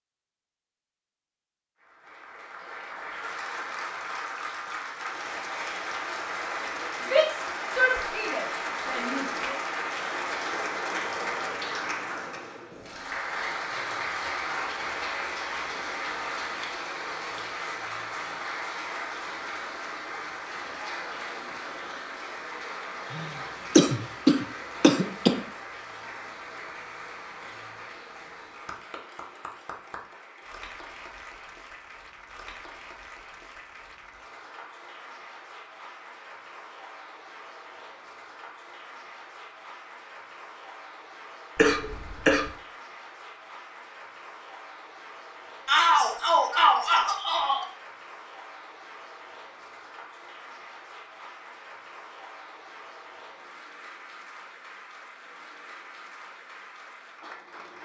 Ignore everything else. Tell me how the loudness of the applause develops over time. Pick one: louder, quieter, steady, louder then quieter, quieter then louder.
quieter.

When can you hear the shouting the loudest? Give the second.
46 s.